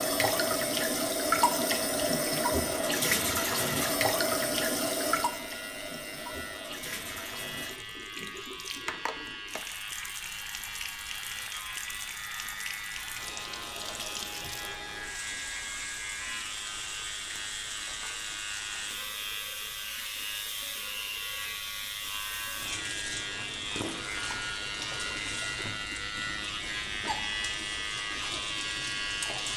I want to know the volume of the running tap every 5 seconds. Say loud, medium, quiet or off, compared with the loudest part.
loud, medium, quiet, quiet, quiet, quiet.